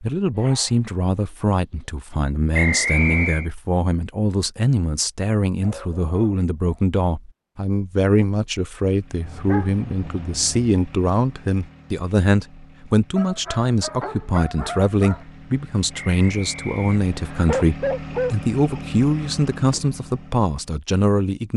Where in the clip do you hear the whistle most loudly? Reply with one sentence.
The loudest moment of the whistle is at 3 seconds.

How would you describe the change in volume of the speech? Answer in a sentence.
The volume of the speech stays about the same.